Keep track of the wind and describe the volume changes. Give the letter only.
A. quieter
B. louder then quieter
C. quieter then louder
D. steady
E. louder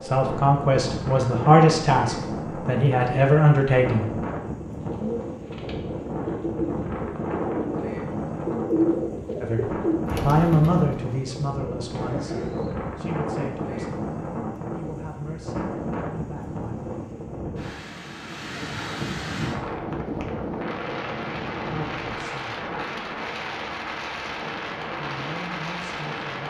D.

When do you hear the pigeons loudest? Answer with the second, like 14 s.
9 s.